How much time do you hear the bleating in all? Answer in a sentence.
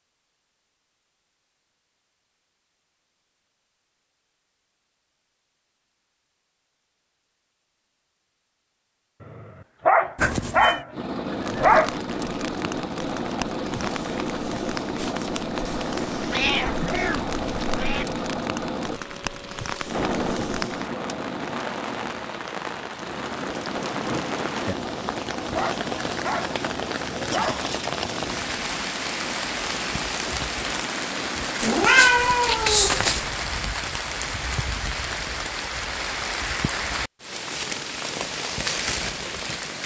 You can't hear the bleating here.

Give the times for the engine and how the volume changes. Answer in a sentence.
The engine can be heard from 10.9 to 31.6 s, getting quieter.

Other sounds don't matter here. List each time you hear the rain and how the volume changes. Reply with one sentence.
You can hear the rain from 11.2 to 39.8 s, getting louder.